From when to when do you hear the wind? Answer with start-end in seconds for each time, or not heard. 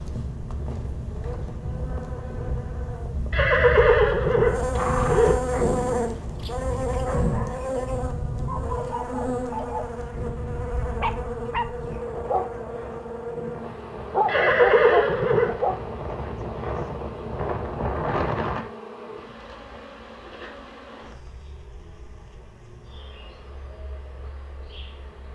0.0-18.6.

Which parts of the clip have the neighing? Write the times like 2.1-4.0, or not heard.
3.3-5.3, 14.2-15.5.